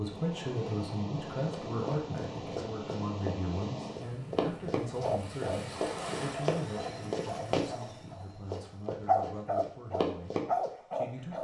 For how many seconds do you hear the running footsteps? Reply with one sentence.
The running footsteps can be heard for 9 seconds in total.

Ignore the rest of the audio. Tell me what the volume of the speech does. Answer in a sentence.
The loudness of the speech goes down.